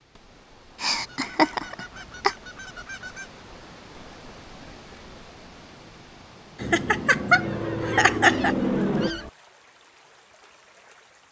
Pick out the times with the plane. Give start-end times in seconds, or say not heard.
6.5-9.1.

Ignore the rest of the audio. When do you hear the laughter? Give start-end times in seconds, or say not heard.
0.8-2.4, 6.6-8.6.